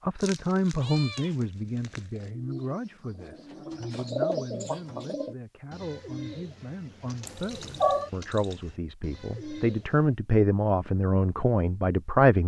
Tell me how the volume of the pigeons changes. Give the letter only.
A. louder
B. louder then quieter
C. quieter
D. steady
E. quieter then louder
B.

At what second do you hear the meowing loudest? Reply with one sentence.
The volume of the meowing peaks at 8 seconds.